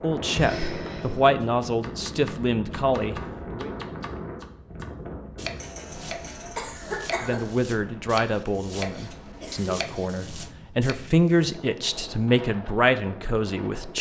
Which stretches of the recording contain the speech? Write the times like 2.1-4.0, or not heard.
0.0-3.7, 7.2-13.9.